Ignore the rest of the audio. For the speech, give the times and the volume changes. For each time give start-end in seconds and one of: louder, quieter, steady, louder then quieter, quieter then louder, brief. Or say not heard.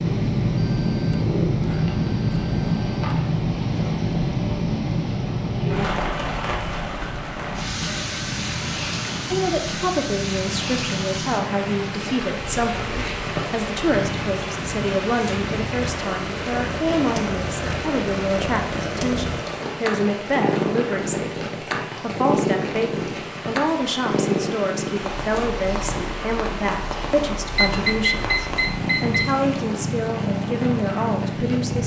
9.3-31.8 steady.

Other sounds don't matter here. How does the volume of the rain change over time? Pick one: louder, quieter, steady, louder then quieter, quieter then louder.
quieter.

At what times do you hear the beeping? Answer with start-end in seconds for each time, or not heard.
0.6-3.0, 27.6-29.4.